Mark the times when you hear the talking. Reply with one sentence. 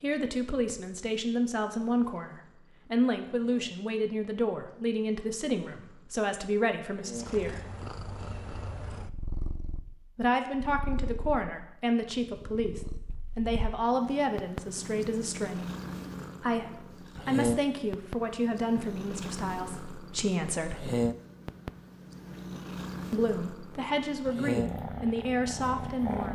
The talking can be heard from 0.0 to 7.7 s, from 10.2 to 15.7 s, from 16.4 to 20.9 s and from 23.1 to 26.3 s.